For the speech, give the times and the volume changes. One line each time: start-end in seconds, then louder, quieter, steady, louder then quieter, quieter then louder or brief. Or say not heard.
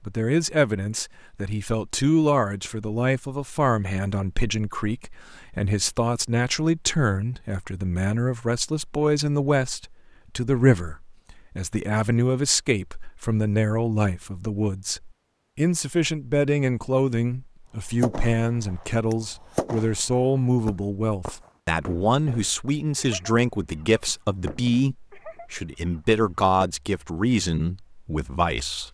0.0-28.8 steady.